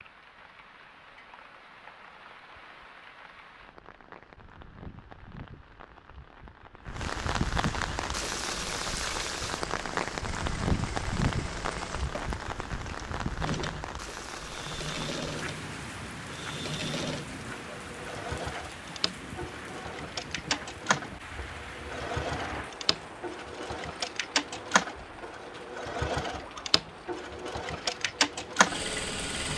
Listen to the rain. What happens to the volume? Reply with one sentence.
The loudness of the rain goes up, then down.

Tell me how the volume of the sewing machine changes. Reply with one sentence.
The volume of the sewing machine goes up.